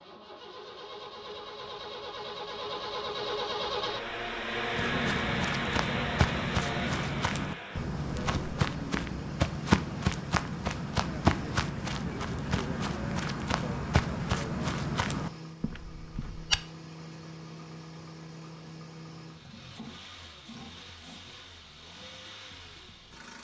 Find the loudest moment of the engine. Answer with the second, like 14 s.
5 s.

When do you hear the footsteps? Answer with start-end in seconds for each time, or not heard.
4.7-16.6.